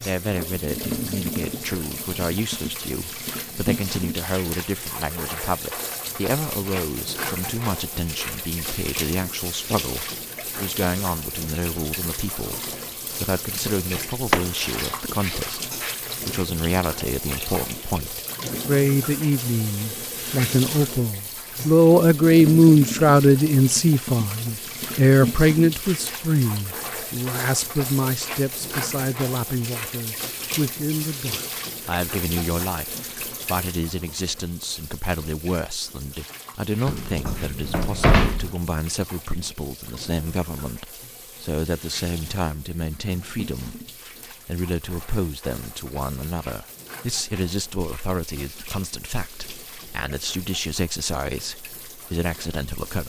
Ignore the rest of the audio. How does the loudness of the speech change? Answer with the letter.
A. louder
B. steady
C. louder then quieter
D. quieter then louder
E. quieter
C.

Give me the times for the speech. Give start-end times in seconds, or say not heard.
0.0-43.9, 44.5-53.0.